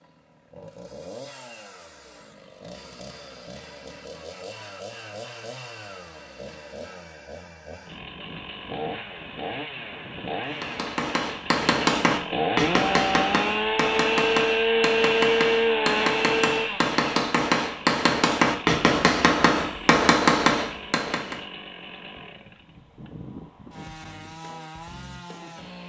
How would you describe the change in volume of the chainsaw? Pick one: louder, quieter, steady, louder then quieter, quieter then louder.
louder then quieter.